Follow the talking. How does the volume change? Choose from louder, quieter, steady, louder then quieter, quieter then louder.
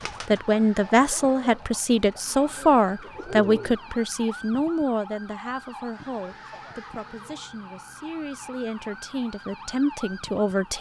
quieter then louder.